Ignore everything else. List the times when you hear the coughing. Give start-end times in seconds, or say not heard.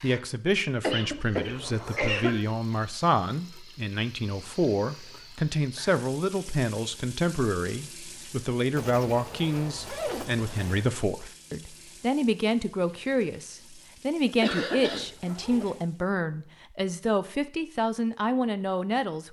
0.8-2.4, 14.2-15.1.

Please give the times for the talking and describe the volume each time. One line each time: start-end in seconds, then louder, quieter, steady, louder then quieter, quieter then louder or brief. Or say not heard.
0.0-19.2 steady.